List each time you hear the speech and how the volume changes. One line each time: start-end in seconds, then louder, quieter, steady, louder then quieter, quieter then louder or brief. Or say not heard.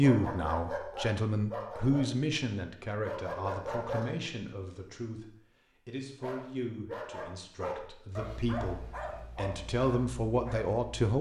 0.0-11.1 quieter then louder.